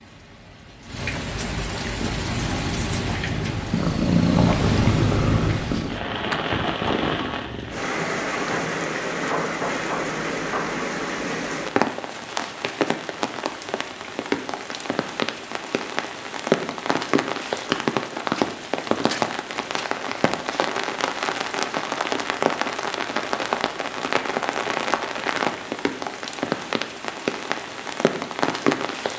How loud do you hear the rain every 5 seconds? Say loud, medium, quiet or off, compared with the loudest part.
medium, loud, loud, loud, loud, loud.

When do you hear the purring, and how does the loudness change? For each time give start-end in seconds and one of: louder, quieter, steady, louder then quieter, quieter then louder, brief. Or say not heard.
1.9-7.8 louder then quieter.